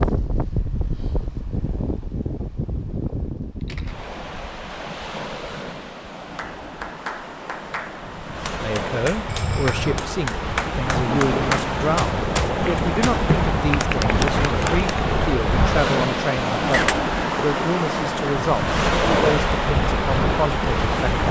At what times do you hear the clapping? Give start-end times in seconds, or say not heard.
6.3-14.9.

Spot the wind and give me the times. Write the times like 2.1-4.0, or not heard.
0.0-21.2.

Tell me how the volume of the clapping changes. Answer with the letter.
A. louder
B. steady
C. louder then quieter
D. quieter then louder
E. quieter
A.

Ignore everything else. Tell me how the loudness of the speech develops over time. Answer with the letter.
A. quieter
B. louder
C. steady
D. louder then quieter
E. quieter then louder
C.